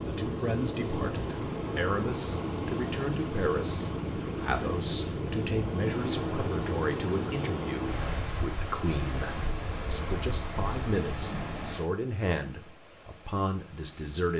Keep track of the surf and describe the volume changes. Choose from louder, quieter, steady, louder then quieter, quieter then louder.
quieter.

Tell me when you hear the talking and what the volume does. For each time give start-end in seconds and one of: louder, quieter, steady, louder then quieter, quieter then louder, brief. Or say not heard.
0.0-14.3 steady.